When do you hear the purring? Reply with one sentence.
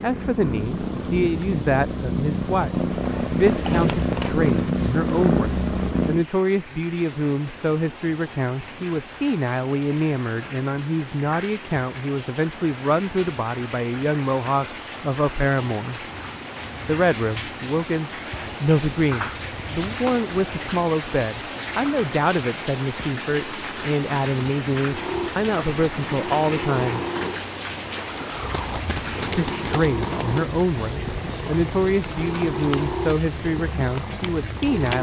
You can hear the purring from 0.0 to 6.2 s and from 24.9 to 34.9 s.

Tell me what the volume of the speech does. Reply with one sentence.
The volume of the speech stays about the same.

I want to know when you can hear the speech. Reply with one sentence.
You can hear the speech from 0.0 to 16.1 s, from 16.9 to 27.0 s and from 29.4 to 34.9 s.